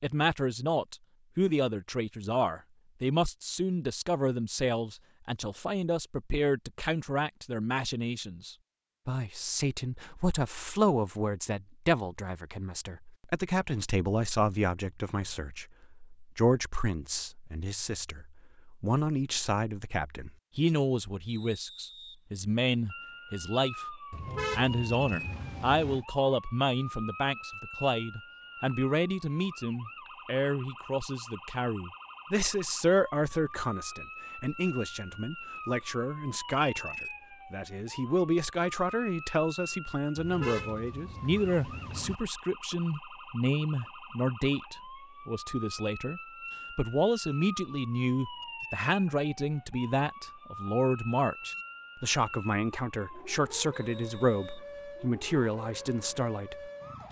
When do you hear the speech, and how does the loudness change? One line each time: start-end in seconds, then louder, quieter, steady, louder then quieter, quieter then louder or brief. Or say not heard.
0.0-56.7 steady.